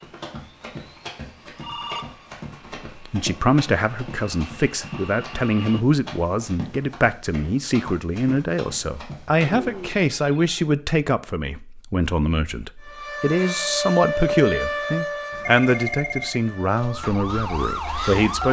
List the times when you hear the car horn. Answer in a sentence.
You can't hear the car horn here.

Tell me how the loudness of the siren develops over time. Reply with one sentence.
The loudness of the siren goes down, then up.